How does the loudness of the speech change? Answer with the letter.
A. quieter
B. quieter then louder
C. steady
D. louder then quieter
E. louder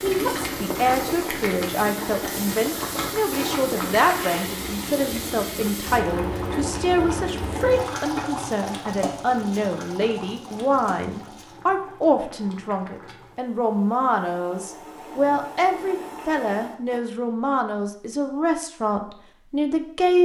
C.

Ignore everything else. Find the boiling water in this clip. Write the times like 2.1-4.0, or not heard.
0.0-17.0.